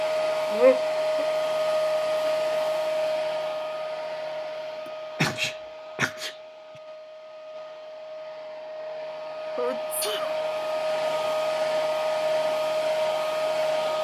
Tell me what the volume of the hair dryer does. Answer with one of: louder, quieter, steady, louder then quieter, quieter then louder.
quieter then louder.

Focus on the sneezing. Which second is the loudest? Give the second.
1 s.